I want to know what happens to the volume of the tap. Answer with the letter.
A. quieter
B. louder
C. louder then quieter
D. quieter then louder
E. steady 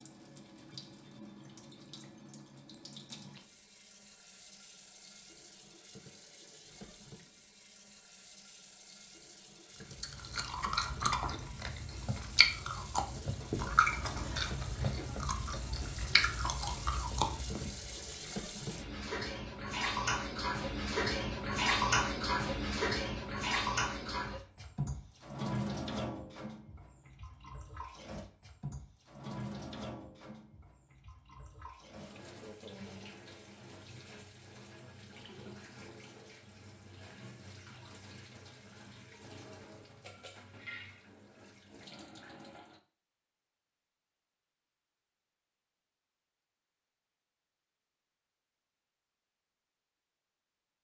C.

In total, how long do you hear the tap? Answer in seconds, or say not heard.
43 s.